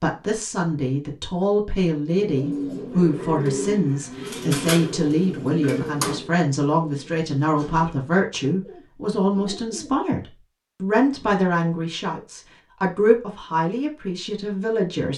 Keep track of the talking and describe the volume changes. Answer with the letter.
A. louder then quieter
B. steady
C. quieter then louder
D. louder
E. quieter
B.